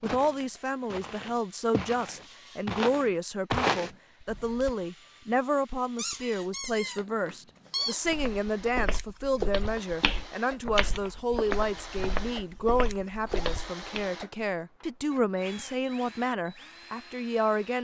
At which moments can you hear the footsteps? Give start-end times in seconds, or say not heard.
0.0-4.7, 8.1-14.1.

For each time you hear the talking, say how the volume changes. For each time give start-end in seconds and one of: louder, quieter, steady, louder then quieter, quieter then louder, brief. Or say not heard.
0.0-17.7 steady.